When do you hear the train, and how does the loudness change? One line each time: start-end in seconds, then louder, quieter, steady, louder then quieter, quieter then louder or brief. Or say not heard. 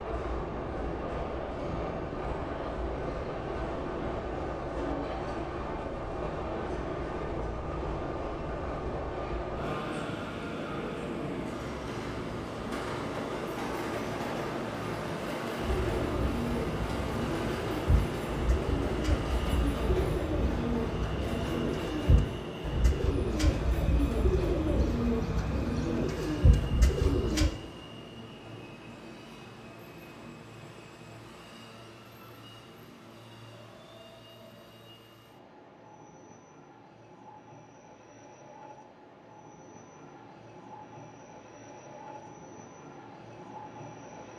0.0-44.3 quieter.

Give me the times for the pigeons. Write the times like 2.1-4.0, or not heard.
15.6-27.5.